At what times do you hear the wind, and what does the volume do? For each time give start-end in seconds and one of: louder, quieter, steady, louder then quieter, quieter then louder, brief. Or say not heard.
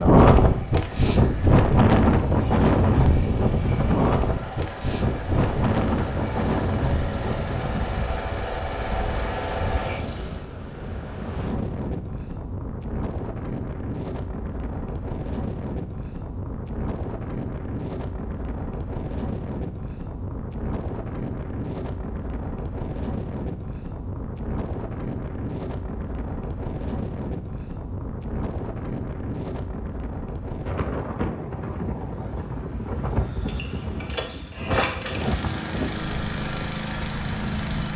0.0-37.9 quieter.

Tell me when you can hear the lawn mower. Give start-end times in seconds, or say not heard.
0.0-10.5, 33.4-37.9.